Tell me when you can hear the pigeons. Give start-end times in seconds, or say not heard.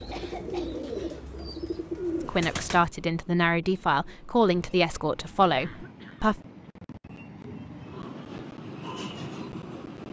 0.0-2.9.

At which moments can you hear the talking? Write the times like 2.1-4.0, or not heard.
2.2-6.3.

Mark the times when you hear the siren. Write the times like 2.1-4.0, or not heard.
not heard.